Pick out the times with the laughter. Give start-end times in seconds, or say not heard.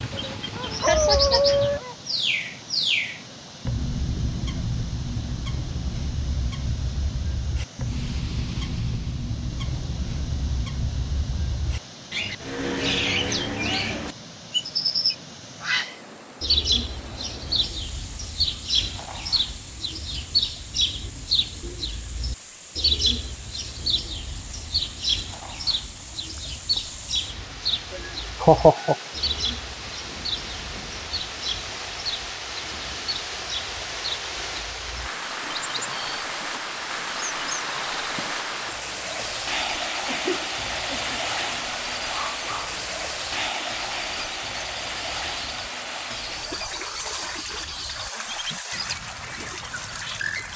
0.8-1.4, 27.9-28.9, 40.0-41.2.